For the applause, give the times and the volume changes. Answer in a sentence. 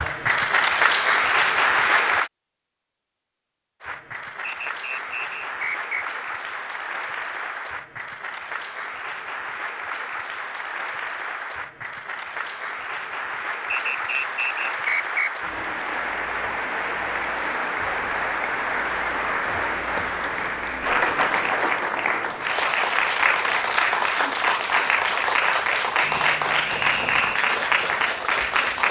You can hear the applause briefly from 0.0 to 2.3 s; and from 3.8 to 28.8 s, getting louder.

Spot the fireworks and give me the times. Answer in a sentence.
The fireworks can't be heard in this clip.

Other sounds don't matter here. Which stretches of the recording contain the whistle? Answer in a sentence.
You can hear the whistle from 4.4 to 6.0 s, from 13.7 to 15.5 s and from 26.0 to 27.4 s.